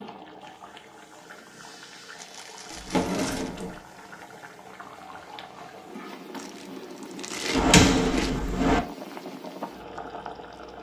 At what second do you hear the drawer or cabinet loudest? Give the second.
8 s.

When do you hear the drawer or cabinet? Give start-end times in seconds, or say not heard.
2.7-3.8, 7.5-8.8.